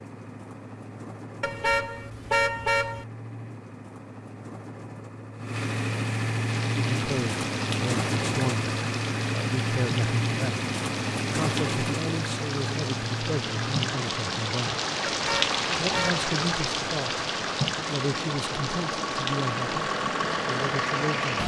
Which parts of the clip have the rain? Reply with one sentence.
You can hear the rain from 6.4 to 21.4 s.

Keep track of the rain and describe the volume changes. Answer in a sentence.
The volume of the rain goes up, then down.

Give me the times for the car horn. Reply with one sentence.
You can hear the car horn from 1.4 to 3.0 s and from 15.1 to 16.2 s.